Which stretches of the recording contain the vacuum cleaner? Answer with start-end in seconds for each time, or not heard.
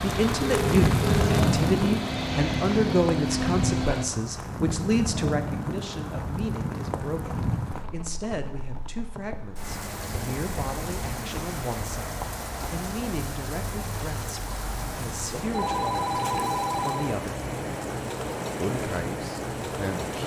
0.0-4.0.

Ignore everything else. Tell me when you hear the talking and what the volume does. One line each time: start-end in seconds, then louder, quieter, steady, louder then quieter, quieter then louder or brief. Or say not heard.
0.0-17.4 quieter
18.6-20.2 brief.